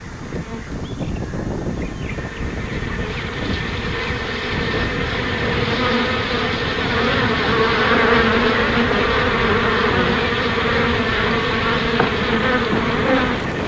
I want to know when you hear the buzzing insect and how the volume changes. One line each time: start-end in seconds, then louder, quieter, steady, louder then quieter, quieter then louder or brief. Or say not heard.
0.0-13.6 louder.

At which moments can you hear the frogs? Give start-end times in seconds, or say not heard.
not heard.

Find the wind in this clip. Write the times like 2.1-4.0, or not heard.
0.0-13.6.